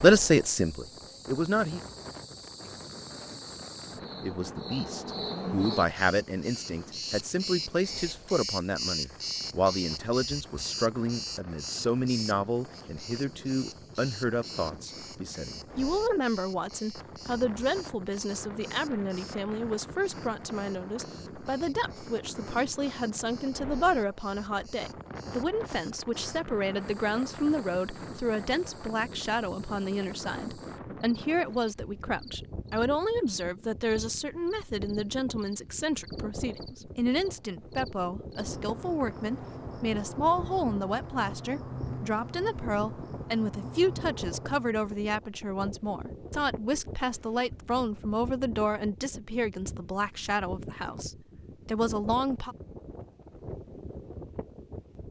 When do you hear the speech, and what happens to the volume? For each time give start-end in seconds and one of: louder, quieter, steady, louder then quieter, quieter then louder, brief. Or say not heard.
0.0-1.8 brief
4.2-52.5 steady.